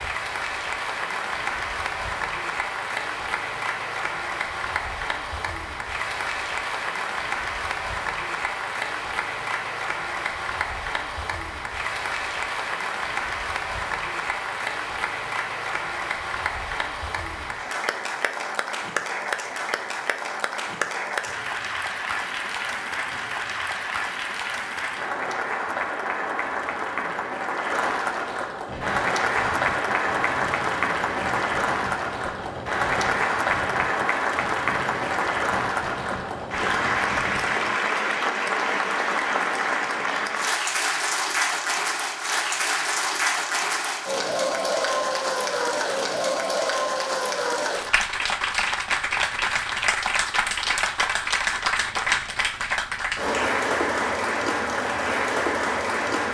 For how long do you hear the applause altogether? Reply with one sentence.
You can hear the applause for 56 seconds altogether.